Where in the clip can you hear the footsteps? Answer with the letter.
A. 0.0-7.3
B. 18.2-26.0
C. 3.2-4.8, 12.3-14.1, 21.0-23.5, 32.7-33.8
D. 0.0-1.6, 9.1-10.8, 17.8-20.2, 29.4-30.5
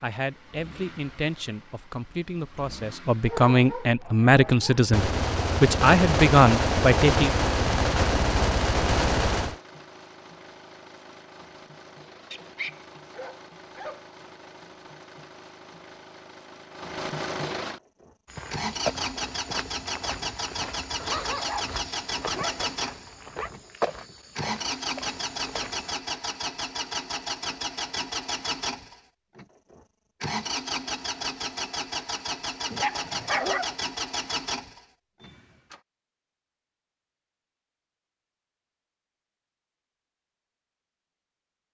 B.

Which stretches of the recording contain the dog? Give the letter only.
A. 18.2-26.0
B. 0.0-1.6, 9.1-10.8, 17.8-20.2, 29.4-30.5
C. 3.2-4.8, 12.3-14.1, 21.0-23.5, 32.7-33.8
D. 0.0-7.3
C.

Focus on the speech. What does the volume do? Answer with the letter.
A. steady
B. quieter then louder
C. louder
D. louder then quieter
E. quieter
C.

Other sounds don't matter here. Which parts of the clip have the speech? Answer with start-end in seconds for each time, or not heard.
0.0-7.3.